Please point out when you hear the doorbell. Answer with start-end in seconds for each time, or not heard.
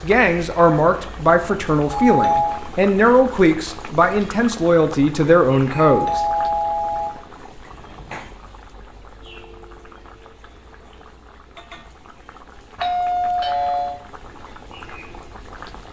1.9-2.6, 5.8-7.2, 12.8-14.0.